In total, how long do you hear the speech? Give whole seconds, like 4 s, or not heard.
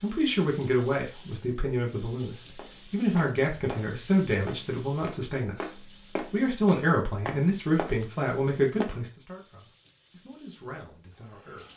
12 s.